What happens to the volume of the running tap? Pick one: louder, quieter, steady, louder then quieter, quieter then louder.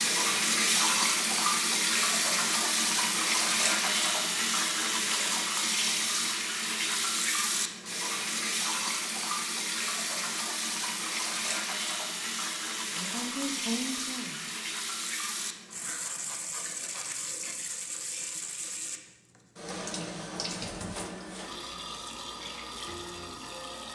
quieter.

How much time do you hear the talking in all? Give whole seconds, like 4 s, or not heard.
2 s.